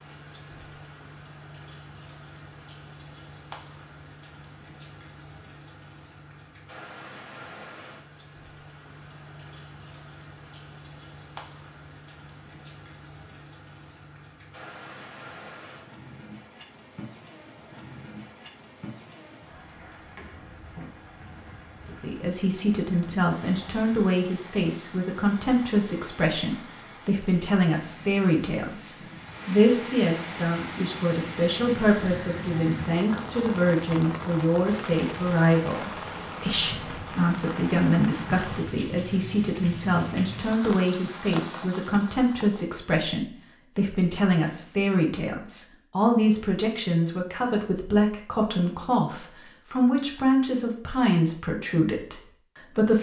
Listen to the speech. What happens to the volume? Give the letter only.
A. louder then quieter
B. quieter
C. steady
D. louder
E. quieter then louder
C.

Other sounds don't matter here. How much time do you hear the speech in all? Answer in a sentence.
The speech can be heard for 31 seconds in total.